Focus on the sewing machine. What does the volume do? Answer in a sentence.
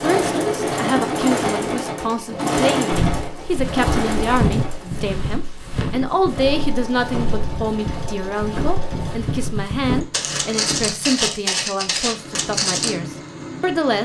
The loudness of the sewing machine goes down.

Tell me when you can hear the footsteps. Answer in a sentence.
You can hear the footsteps from 2.9 to 12.9 s.